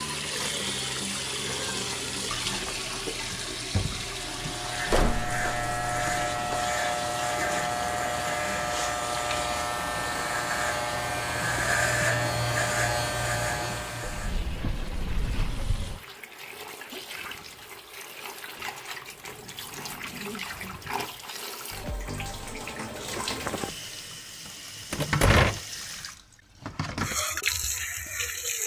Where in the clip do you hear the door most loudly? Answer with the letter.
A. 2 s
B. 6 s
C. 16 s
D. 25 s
D.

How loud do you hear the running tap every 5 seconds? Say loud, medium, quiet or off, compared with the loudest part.
loud, medium, medium, medium, medium, loud.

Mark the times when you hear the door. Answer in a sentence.
The door can be heard from 4.9 to 6.6 s, from 14.0 to 16.0 s and from 24.9 to 25.6 s.